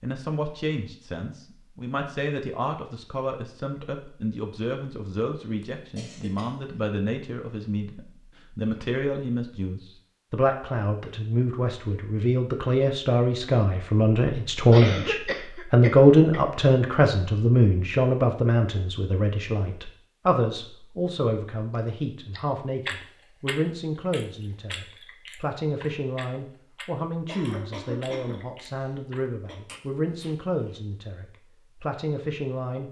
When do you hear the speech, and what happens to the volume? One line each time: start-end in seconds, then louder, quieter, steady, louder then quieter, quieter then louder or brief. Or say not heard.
0.0-32.8 louder then quieter.